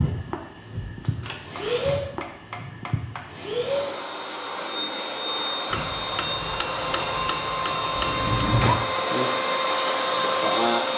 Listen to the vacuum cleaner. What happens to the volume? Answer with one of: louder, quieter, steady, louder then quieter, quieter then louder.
louder.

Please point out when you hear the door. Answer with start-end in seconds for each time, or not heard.
0.8-1.9, 8.0-8.8.